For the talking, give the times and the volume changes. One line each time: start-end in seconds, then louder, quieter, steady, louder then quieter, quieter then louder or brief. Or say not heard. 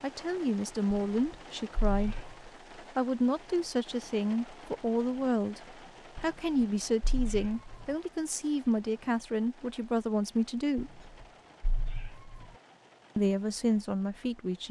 0.0-11.0 steady
13.2-14.6 brief.